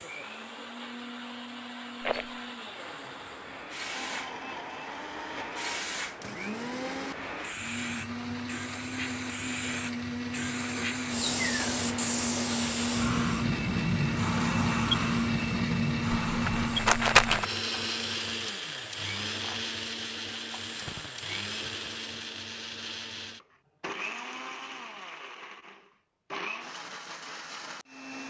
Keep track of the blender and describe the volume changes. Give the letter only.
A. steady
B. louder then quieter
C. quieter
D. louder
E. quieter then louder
B.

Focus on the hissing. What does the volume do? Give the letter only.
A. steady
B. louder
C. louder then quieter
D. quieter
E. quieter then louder
C.